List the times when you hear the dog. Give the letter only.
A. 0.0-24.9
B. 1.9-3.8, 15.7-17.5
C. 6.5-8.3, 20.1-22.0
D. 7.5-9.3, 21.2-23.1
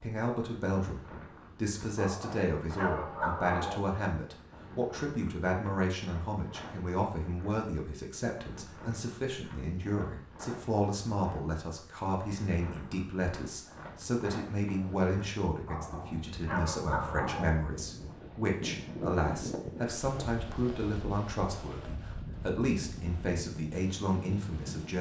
B.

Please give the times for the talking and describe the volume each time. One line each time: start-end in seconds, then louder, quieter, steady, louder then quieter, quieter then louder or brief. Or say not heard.
0.0-24.9 steady.